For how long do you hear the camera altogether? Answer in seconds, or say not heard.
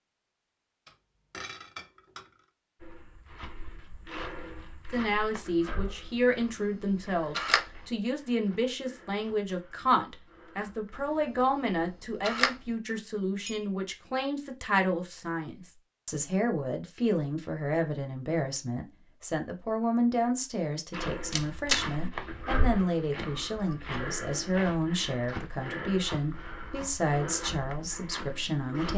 4 s.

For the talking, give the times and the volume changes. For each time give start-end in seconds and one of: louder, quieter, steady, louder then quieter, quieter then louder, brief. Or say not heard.
4.9-28.9 steady.